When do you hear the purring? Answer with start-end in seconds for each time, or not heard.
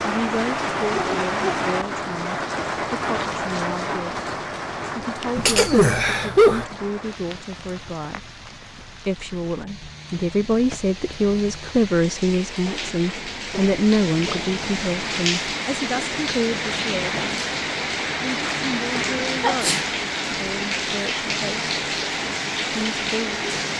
not heard.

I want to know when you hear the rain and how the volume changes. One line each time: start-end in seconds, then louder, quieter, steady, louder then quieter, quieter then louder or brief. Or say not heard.
0.0-23.7 quieter then louder.